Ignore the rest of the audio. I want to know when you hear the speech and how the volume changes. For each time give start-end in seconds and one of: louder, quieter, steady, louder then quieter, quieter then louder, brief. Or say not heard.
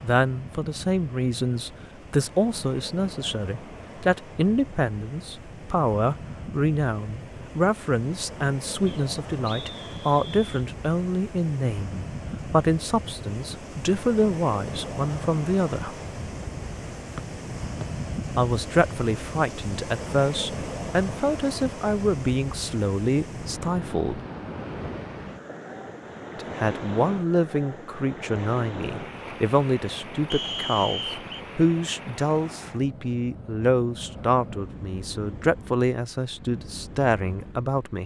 0.0-16.0 steady
18.4-24.2 steady
26.4-38.0 steady.